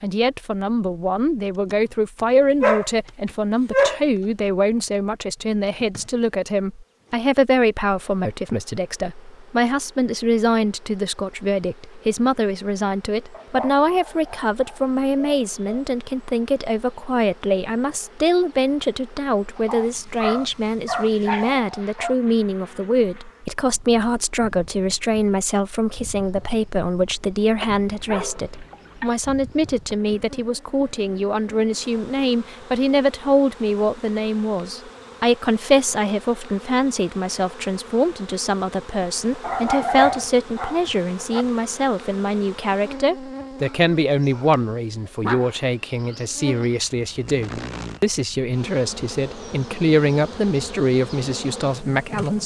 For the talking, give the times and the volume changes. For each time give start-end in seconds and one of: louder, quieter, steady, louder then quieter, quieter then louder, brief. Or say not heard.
0.0-52.4 steady.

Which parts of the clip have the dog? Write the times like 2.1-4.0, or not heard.
2.6-4.0, 13.3-15.8, 19.6-22.1, 27.6-29.1, 39.4-41.5, 45.2-46.8.